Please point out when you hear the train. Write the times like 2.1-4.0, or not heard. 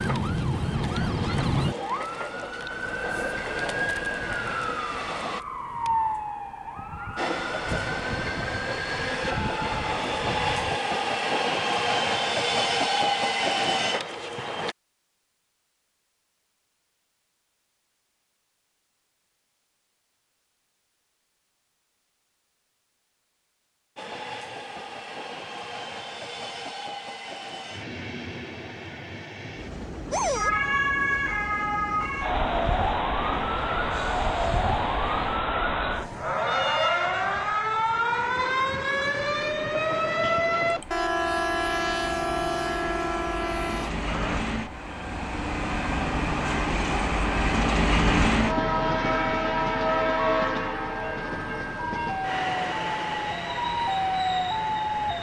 0.0-5.5, 7.2-14.8, 23.9-55.1.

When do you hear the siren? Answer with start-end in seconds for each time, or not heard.
0.0-10.8, 30.1-44.4, 51.8-55.1.